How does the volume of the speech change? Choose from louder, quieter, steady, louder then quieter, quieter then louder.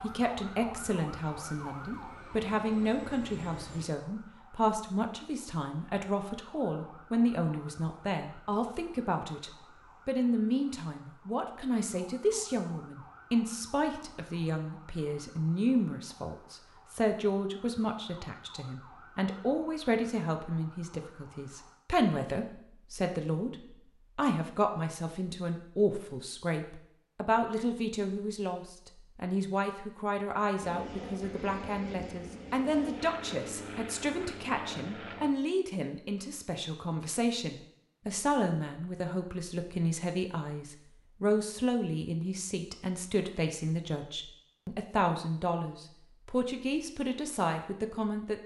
steady.